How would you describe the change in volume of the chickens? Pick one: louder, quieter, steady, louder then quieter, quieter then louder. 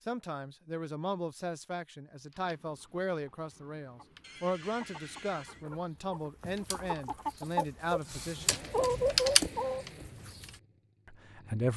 louder.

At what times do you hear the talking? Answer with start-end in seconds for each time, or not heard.
0.1-8.6, 11.1-11.7.